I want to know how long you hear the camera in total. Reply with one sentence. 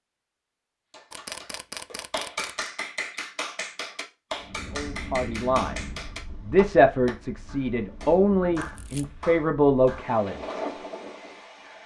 The camera can be heard for 2 seconds in total.